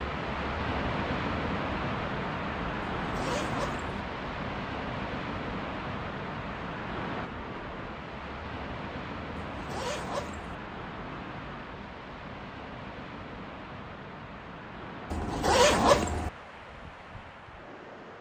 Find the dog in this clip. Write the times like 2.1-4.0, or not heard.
not heard.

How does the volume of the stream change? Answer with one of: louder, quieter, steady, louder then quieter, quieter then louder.
quieter.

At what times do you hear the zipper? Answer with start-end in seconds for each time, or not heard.
3.0-3.9, 9.3-10.6, 15.1-16.3.